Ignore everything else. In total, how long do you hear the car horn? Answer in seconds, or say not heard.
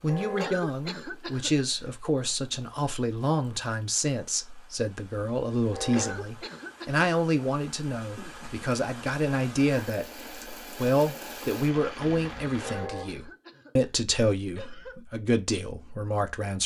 2 s.